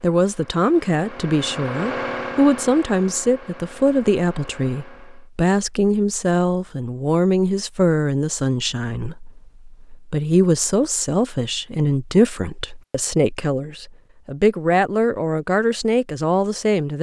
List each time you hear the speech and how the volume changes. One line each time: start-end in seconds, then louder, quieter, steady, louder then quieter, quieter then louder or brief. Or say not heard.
0.0-16.9 steady.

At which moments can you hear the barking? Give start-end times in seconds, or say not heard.
not heard.